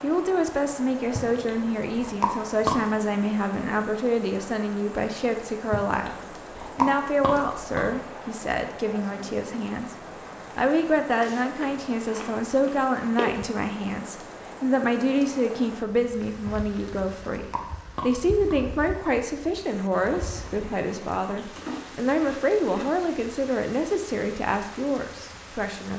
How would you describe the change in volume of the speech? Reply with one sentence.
The loudness of the speech stays about the same.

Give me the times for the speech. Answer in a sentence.
You can hear the speech from 0.0 to 9.9 s and from 10.6 to 25.9 s.